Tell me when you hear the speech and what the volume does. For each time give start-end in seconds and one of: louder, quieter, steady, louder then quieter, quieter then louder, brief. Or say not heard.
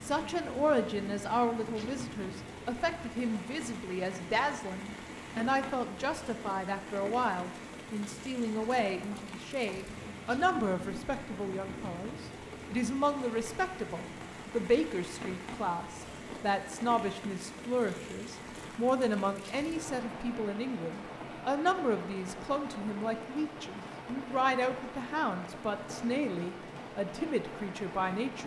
0.0-28.4 steady.